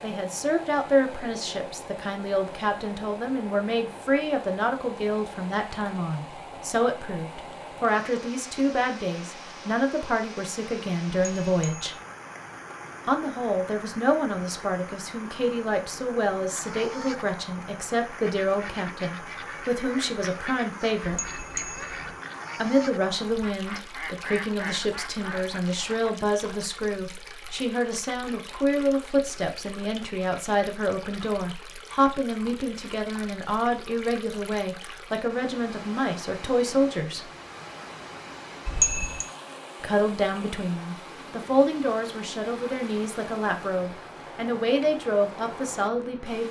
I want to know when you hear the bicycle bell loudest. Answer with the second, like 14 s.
39 s.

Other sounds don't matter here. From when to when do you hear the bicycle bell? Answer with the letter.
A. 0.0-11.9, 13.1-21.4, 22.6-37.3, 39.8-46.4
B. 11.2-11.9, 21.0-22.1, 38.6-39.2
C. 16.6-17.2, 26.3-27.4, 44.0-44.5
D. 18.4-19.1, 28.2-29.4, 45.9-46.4
B.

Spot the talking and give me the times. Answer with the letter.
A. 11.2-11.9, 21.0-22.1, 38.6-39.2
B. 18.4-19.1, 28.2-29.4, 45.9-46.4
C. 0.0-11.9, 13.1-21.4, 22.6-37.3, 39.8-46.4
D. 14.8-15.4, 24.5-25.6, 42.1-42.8
C.